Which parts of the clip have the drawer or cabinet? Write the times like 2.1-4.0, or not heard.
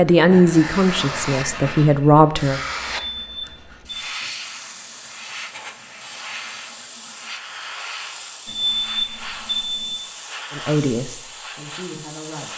not heard.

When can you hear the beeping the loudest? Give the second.
9 s.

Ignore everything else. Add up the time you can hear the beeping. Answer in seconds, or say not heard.
3 s.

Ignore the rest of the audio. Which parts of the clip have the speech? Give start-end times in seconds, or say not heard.
0.0-2.6, 10.5-12.5.